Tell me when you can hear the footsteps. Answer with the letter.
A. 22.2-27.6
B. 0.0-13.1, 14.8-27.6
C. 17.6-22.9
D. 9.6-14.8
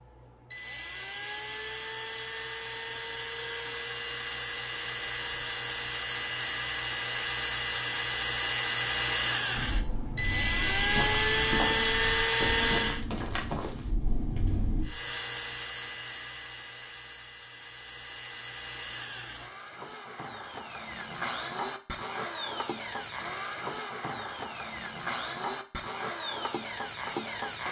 D.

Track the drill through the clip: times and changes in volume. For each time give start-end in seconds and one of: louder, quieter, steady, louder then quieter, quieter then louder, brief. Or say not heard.
0.0-13.1 louder
14.8-27.6 louder.